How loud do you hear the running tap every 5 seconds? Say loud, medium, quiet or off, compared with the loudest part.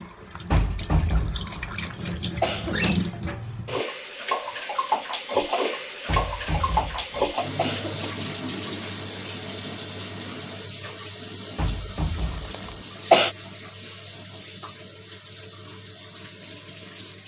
loud, loud, medium, quiet.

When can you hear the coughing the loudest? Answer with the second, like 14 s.
13 s.